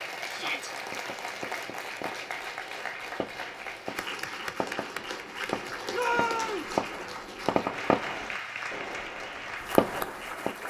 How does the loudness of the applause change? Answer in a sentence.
The volume of the applause stays about the same.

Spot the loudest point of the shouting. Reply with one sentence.
The volume of the shouting peaks at 6 seconds.